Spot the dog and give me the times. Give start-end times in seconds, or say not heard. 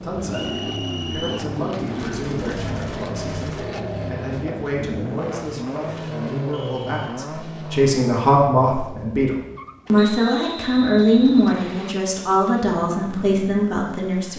not heard.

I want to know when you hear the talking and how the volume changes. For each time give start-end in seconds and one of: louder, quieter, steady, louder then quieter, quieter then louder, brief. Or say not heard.
0.0-14.3 louder.